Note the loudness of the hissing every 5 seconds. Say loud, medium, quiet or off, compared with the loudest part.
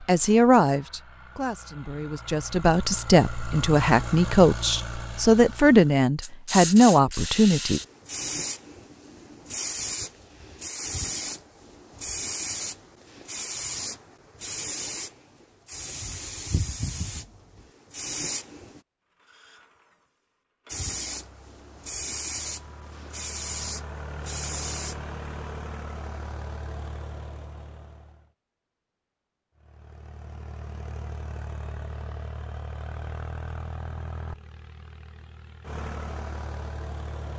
off, loud, loud, loud, loud, off, off, off.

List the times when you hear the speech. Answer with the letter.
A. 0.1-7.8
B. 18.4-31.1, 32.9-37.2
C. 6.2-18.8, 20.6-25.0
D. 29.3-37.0
A.